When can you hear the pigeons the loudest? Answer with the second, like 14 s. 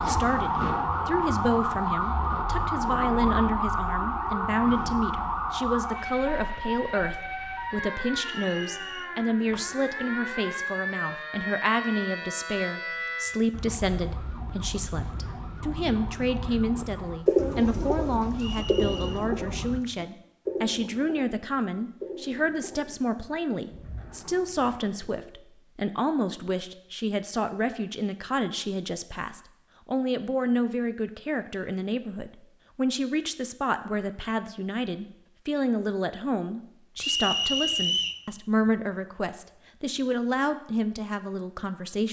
17 s.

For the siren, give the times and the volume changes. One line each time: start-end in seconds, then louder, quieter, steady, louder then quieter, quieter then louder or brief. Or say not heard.
0.0-19.8 quieter.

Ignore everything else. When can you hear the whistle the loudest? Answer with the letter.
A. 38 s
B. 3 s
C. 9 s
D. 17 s
A.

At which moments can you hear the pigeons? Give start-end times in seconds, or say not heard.
16.8-25.2.